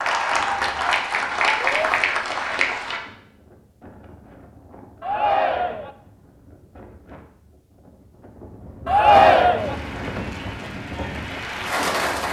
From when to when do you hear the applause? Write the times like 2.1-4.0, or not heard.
0.0-3.0, 9.6-12.2.